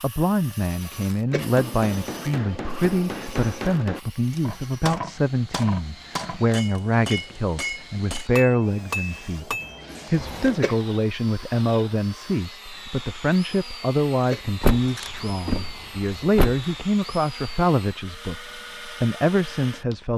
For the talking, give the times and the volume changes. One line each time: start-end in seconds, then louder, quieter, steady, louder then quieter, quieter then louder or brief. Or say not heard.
0.0-20.1 steady.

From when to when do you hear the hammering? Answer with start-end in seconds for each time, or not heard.
1.3-10.6.